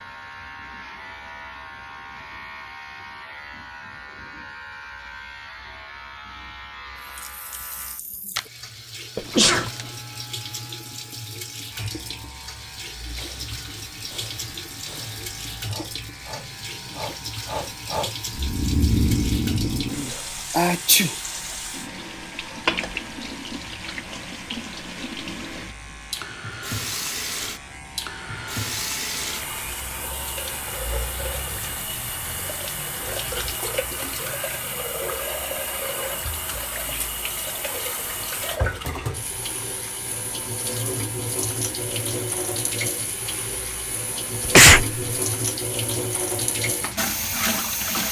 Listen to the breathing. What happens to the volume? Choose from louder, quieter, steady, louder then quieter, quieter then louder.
louder.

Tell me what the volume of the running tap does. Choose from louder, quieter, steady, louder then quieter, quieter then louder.
louder.